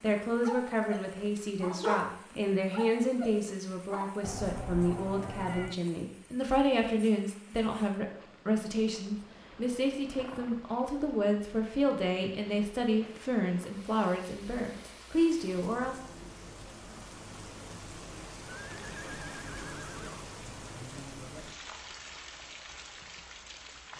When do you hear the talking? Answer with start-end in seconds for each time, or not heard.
0.0-16.0.